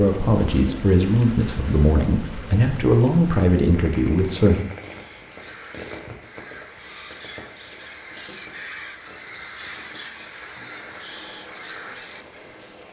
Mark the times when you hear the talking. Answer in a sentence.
You can hear the talking from 0.0 to 4.7 s.